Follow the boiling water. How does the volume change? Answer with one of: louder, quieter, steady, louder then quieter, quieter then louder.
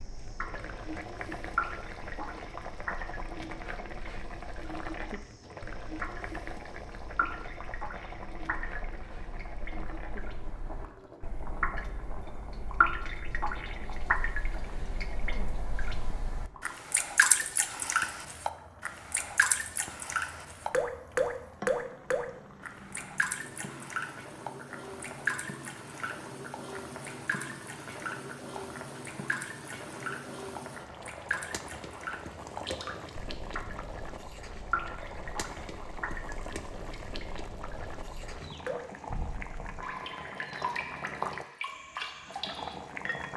quieter then louder.